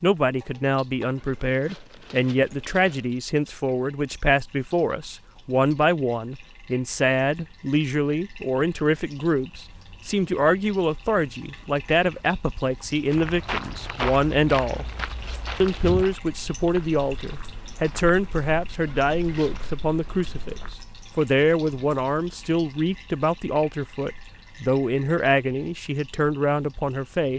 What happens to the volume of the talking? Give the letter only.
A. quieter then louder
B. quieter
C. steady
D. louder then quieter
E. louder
C.